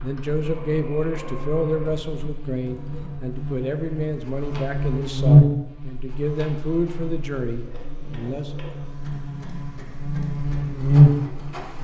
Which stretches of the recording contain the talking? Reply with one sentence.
The talking can be heard from 0.0 to 8.6 s.